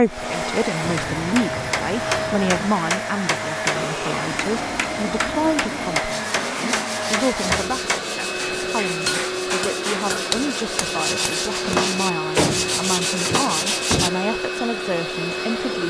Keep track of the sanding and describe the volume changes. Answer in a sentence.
The volume of the sanding goes up.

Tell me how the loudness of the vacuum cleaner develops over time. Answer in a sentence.
The volume of the vacuum cleaner stays about the same.